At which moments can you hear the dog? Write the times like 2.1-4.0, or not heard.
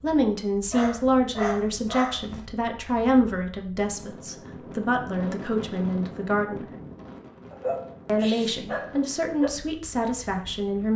0.7-2.5, 7.5-9.5.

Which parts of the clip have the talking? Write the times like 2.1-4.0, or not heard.
0.0-6.7, 8.1-10.9.